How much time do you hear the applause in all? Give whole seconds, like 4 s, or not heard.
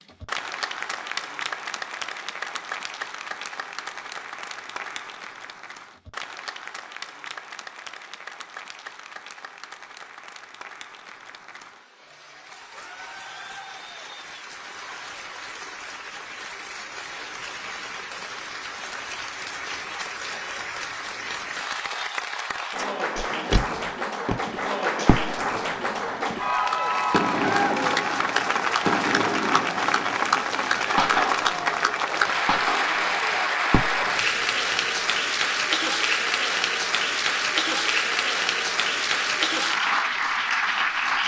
41 s.